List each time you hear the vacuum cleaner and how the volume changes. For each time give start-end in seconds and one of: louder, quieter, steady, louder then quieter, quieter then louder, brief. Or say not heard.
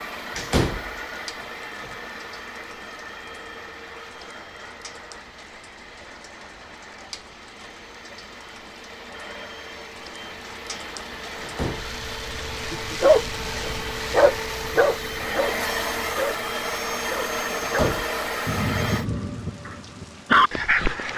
0.0-19.1 quieter then louder.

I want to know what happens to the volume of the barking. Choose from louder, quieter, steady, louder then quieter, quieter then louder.
quieter then louder.